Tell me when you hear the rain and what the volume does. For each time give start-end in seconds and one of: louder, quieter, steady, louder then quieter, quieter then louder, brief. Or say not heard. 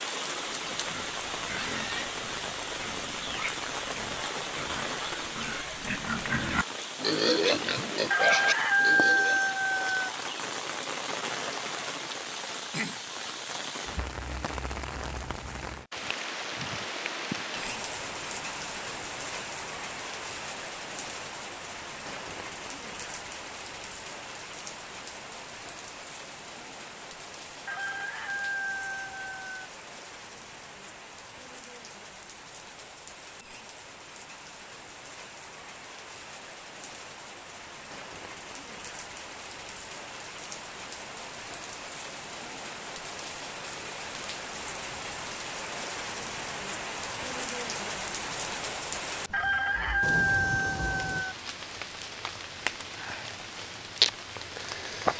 0.0-55.1 quieter then louder.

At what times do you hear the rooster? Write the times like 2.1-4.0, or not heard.
8.1-10.1, 27.6-29.7, 49.3-51.4.